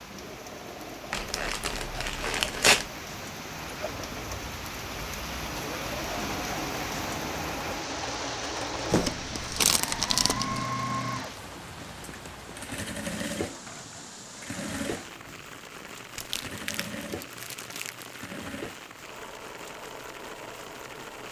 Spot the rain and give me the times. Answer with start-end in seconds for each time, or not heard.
0.0-21.2.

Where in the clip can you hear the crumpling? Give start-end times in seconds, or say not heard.
1.1-2.9, 8.9-10.7, 15.9-18.2.